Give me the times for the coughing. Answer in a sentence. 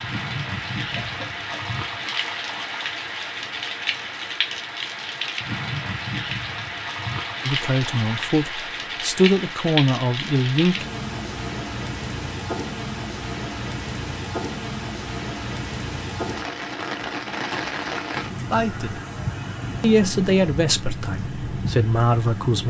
You can hear the coughing from 0.9 to 1.7 s.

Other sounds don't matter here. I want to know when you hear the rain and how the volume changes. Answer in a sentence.
You can hear the rain from 0.0 to 22.6 s, at a steady volume.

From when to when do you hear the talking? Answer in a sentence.
The talking can be heard from 7.5 to 10.8 s, from 18.5 to 18.9 s and from 19.8 to 22.6 s.